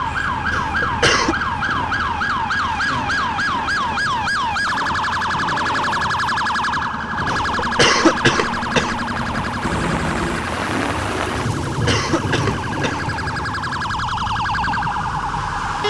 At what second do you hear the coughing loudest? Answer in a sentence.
The loudest moment of the coughing is at 8 seconds.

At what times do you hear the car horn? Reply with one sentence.
The car horn can be heard from 9.6 to 10.5 s.